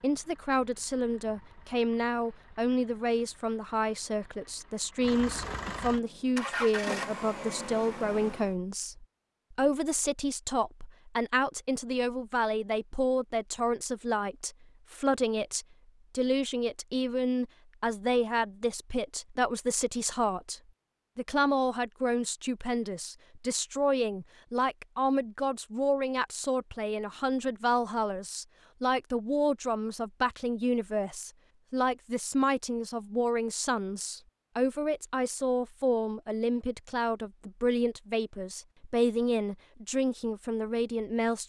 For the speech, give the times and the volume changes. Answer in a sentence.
You can hear the speech from 0.0 to 41.4 s, at a steady volume.